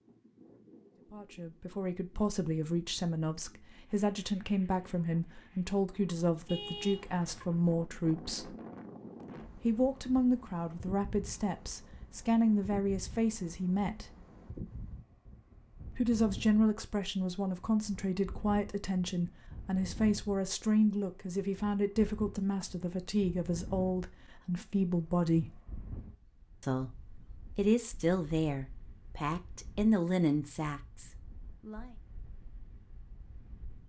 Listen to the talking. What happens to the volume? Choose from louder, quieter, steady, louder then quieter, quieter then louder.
steady.